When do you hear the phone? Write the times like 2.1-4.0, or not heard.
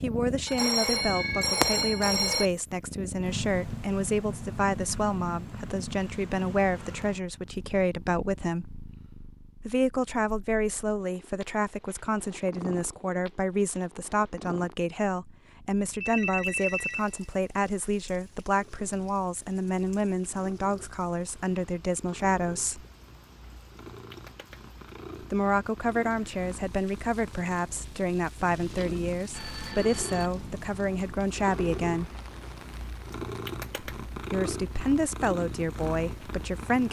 0.5-2.5, 16.0-17.2, 28.6-30.3.